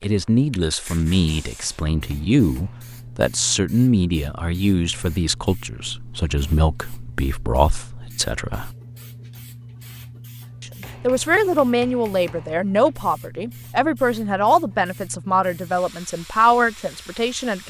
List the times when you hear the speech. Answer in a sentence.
The speech can be heard from 0.0 to 8.8 s and from 10.6 to 17.6 s.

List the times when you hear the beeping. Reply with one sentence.
You can't hear the beeping here.